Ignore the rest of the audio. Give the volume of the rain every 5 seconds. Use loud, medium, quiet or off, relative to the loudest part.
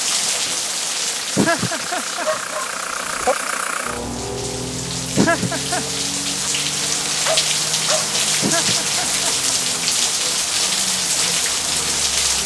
medium, loud, loud.